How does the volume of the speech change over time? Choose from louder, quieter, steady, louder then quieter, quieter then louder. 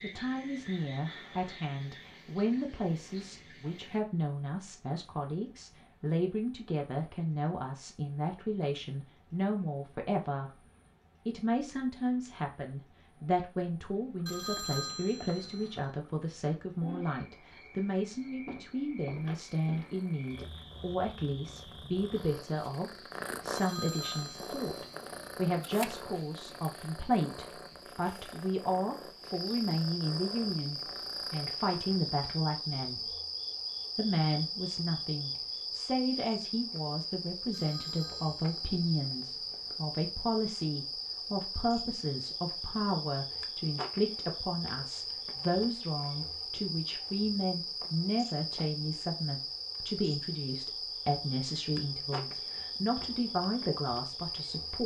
steady.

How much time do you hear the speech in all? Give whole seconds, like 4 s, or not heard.
53 s.